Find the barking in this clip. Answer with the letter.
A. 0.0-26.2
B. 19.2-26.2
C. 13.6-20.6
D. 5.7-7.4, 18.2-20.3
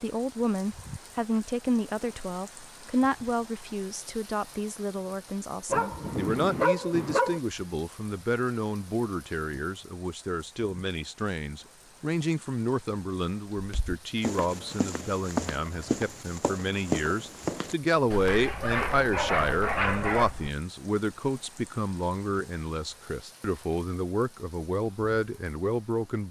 D.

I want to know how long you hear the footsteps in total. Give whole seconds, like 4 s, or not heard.
7 s.